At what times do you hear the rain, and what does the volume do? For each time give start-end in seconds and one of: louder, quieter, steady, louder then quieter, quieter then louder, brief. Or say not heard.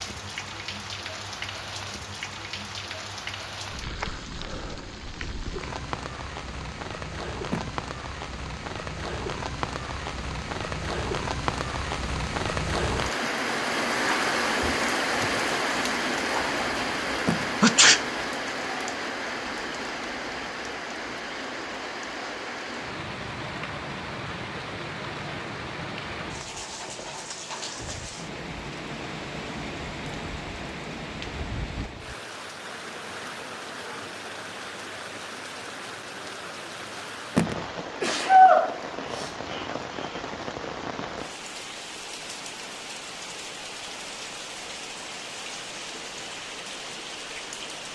0.0-47.9 louder then quieter.